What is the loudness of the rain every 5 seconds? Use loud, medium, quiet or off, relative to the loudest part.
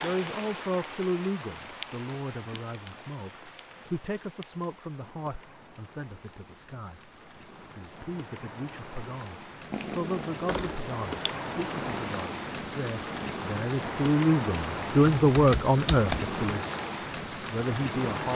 medium, quiet, loud, loud.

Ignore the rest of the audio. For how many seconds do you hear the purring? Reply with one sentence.
The purring can be heard for 4 seconds in total.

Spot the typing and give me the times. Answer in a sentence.
The typing can be heard from 15.2 to 16.6 s.